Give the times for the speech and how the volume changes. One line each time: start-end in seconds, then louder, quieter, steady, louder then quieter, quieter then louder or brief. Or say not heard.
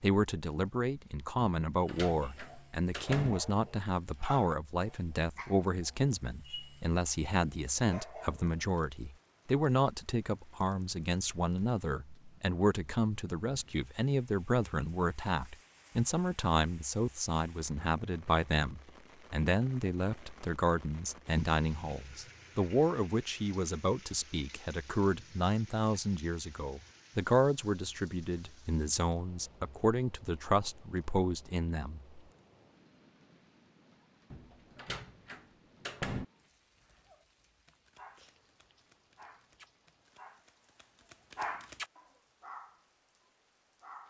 0.0-32.2 steady.